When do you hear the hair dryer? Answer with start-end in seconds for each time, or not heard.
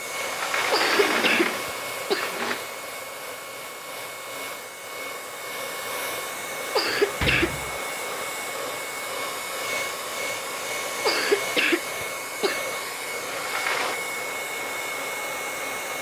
0.0-15.9.